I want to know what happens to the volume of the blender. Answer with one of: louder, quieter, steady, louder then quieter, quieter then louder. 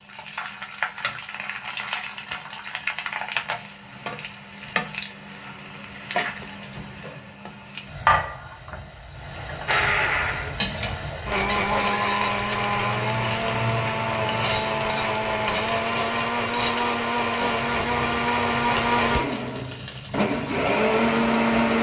steady.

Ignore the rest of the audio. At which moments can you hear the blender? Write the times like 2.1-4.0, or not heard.
9.7-21.7.